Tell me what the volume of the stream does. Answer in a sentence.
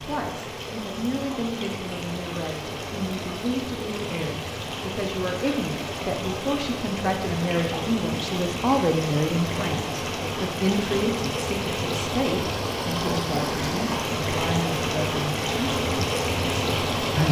The volume of the stream goes up.